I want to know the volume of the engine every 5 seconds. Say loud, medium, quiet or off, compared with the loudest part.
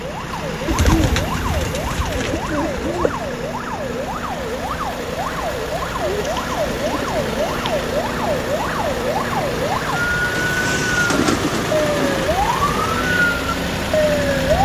medium, loud, loud.